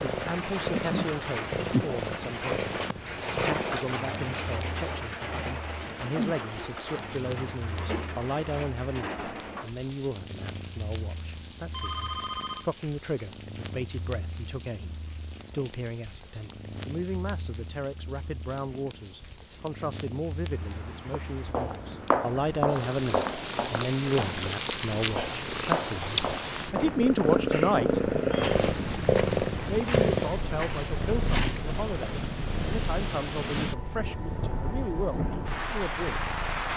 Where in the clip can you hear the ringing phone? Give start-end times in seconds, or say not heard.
11.7-12.7.